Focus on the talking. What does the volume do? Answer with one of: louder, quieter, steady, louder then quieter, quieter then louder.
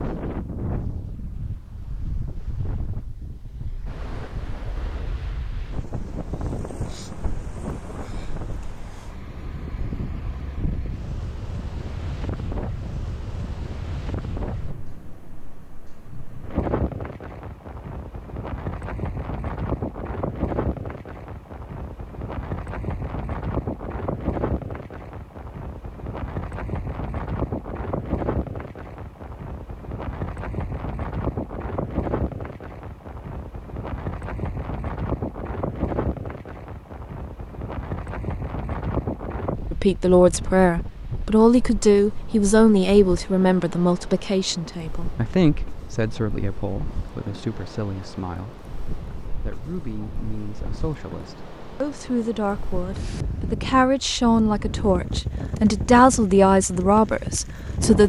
quieter then louder.